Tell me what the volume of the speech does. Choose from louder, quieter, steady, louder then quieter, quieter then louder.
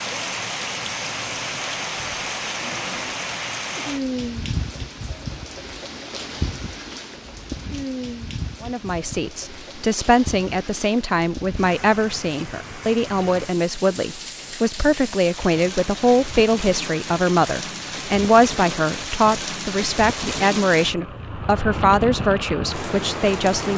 steady.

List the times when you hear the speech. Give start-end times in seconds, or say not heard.
8.6-23.7.